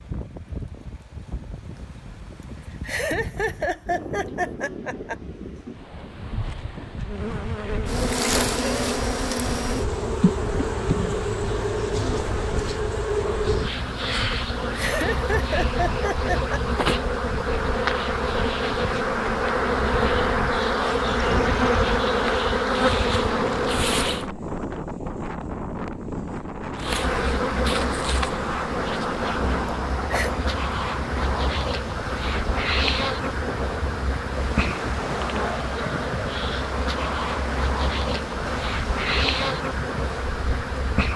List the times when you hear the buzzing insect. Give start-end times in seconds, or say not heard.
7.0-24.3, 26.8-41.1.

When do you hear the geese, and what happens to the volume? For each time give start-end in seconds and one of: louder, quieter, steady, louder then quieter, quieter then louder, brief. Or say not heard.
not heard.